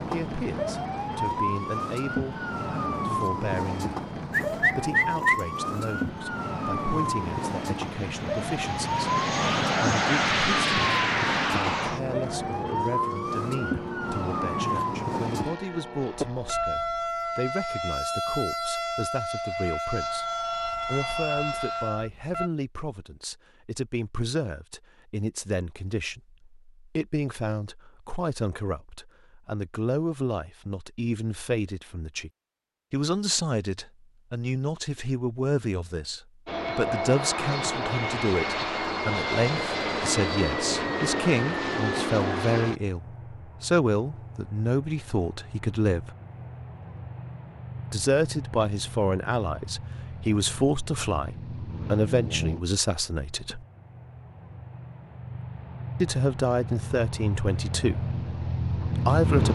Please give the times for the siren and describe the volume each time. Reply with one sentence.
The siren can be heard from 0.0 to 22.5 s, at a steady volume.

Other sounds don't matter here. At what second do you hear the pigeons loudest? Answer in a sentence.
The volume of the pigeons peaks at 5 seconds.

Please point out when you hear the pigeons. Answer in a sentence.
You can hear the pigeons from 4.3 to 6.1 s.